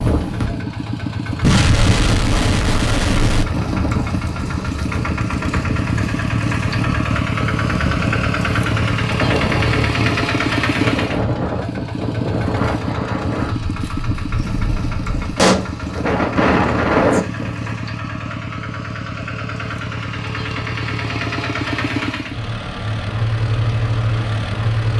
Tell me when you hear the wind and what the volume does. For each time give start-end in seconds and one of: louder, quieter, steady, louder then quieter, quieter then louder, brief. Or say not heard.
0.0-17.8 louder.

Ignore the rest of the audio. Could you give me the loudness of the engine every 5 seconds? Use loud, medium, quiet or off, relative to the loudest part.
medium, loud, loud, medium, loud.